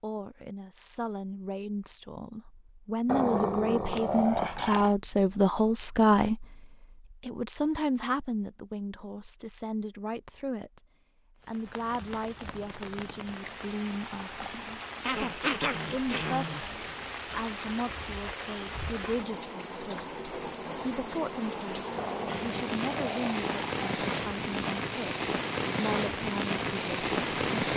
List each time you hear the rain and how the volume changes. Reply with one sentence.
The rain can be heard from 11.4 to 27.7 s, getting louder.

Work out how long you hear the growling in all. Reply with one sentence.
You can hear the growling for 6 seconds altogether.